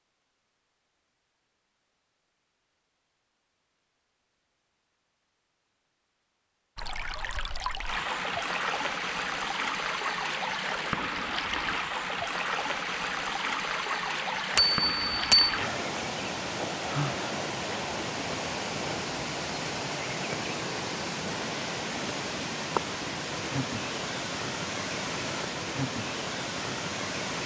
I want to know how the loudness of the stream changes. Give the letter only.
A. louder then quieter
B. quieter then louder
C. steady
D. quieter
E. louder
C.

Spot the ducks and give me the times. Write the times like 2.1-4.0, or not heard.
not heard.